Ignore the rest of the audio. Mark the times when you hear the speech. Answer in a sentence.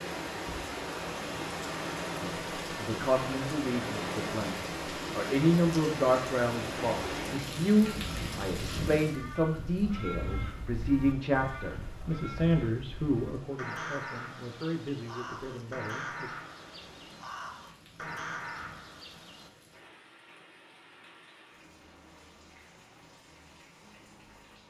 You can hear the speech from 2.2 to 16.4 s.